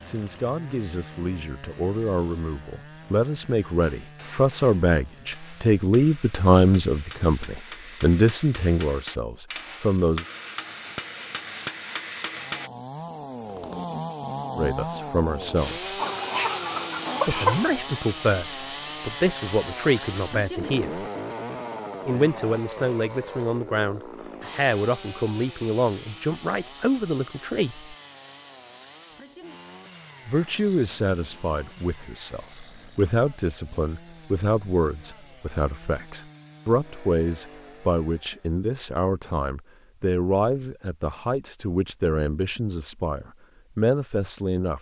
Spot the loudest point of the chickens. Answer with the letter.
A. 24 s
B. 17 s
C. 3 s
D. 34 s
B.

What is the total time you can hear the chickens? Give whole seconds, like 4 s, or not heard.
2 s.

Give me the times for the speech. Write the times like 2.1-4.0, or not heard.
0.0-10.2, 14.6-15.9, 17.2-21.1, 22.1-27.9, 30.2-44.7.